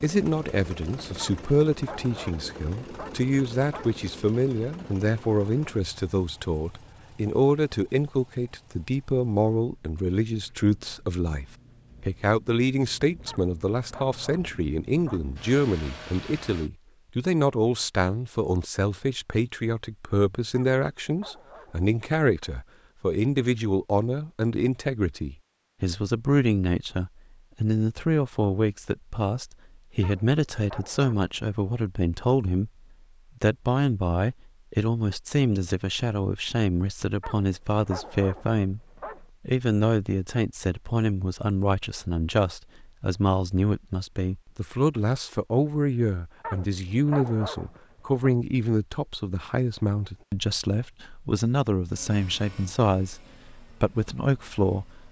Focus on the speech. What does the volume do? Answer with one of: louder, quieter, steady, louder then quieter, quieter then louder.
steady.